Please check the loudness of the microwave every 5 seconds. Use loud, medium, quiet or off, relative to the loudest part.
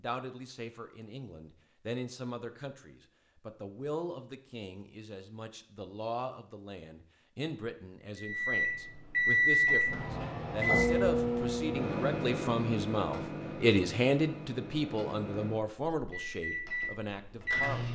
off, loud, medium, medium.